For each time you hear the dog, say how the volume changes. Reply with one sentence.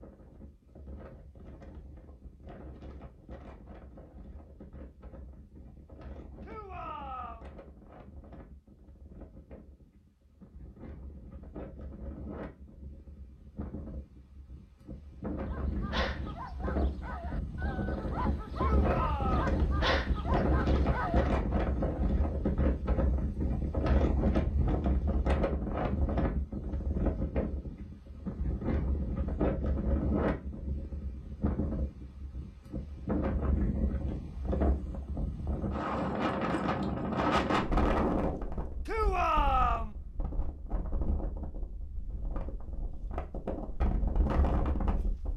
The dog can be heard from 15.4 to 21.3 s, getting quieter then louder.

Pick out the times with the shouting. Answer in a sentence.
The shouting can be heard from 6.4 to 7.5 s, from 18.6 to 19.6 s and from 38.9 to 40.0 s.